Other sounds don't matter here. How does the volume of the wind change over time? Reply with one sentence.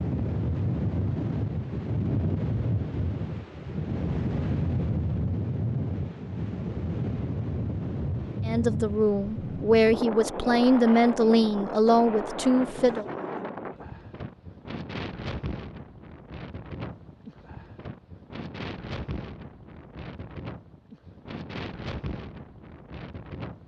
The loudness of the wind goes down.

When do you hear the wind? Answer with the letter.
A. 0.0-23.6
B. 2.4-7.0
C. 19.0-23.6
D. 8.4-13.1
A.